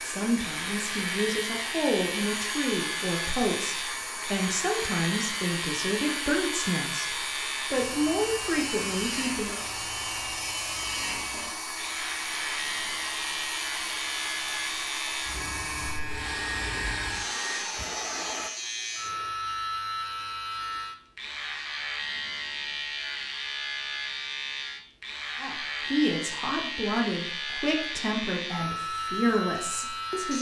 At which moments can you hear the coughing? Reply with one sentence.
You can't hear the coughing here.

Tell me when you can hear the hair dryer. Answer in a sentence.
You can hear the hair dryer from 0.0 to 18.5 s.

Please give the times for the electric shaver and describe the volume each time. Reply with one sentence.
The electric shaver can be heard from 0.3 to 30.3 s, at a steady volume.